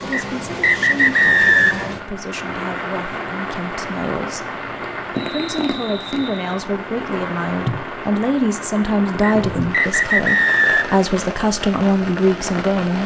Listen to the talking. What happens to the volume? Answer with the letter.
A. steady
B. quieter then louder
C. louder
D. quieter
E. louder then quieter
C.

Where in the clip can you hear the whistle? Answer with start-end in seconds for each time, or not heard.
0.1-1.9, 5.2-6.6, 9.2-11.0.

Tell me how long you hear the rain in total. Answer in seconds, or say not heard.
13 s.